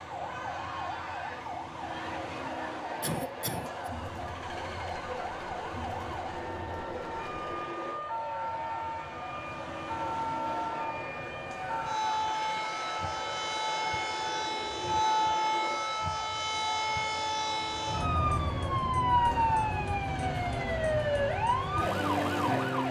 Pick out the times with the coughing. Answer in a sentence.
You can hear the coughing from 3.0 to 3.9 s.